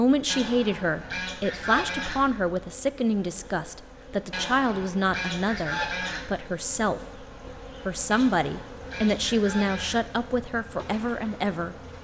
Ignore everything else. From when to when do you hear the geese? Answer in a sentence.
The geese can be heard from 0.2 to 2.2 s, from 4.3 to 6.3 s and from 8.1 to 10.1 s.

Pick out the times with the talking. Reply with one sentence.
You can hear the talking from 0.0 to 7.2 s and from 7.8 to 11.8 s.